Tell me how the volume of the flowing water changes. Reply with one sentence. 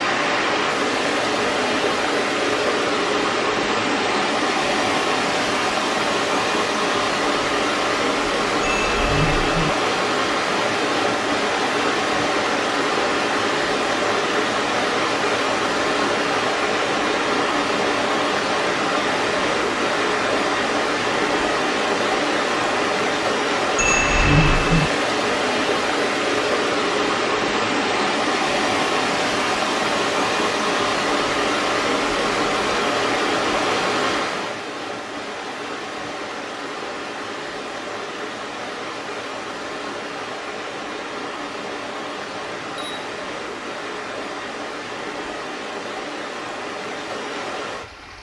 The volume of the flowing water goes down.